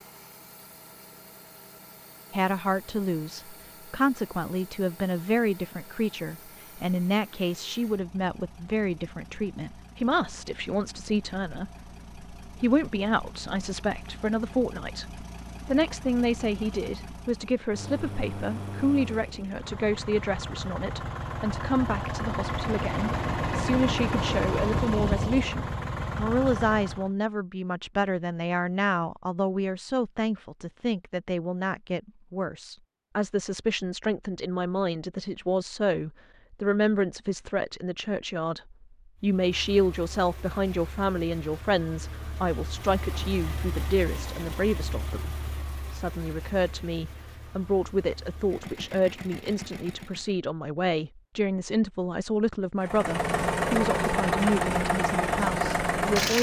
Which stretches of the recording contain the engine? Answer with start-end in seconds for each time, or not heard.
0.0-27.1, 39.1-50.4, 52.8-56.3.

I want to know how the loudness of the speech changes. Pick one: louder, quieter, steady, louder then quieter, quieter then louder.
steady.